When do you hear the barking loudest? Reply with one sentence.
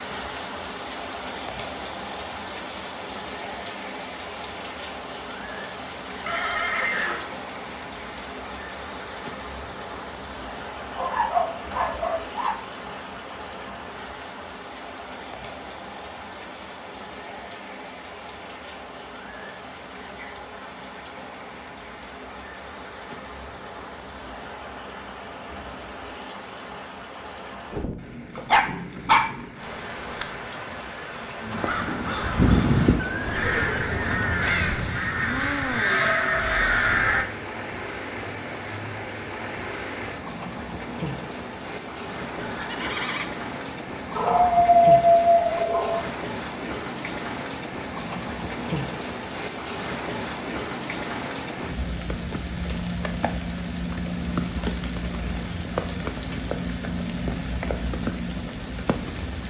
The volume of the barking peaks at 45 seconds.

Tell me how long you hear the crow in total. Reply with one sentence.
The crow can be heard for 6 seconds in total.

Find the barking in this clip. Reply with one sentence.
The barking can be heard from 10.9 to 12.6 s, from 28.4 to 30.2 s and from 44.1 to 46.0 s.